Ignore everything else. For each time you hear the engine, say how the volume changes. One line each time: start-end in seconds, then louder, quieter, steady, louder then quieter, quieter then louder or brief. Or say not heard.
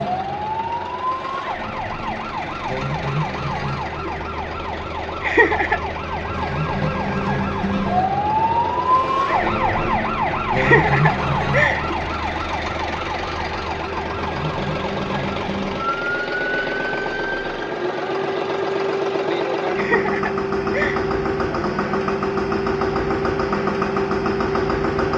0.0-25.1 louder.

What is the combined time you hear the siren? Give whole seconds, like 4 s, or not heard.
25 s.